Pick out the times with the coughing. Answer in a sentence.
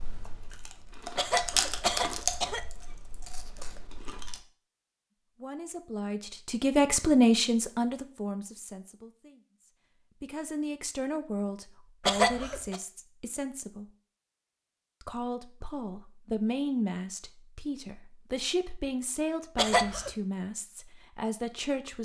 You can hear the coughing from 1.1 to 2.7 s, from 12.1 to 12.8 s and from 19.6 to 20.1 s.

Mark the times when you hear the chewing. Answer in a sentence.
The chewing can be heard from 0.0 to 4.4 s.